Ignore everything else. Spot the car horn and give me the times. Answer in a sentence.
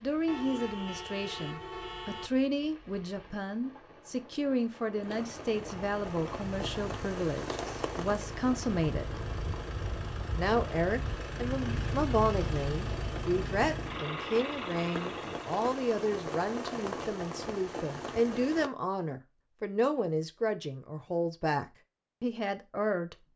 The car horn can be heard from 0.2 to 2.3 s.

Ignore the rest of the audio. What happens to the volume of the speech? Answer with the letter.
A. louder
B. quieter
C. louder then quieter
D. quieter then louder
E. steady
E.